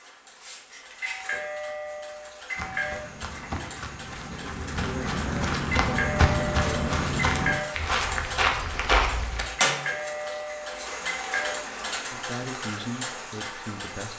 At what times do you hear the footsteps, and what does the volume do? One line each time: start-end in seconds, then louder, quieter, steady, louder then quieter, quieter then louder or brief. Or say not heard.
2.5-9.4 louder.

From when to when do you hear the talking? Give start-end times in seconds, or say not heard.
11.8-14.1.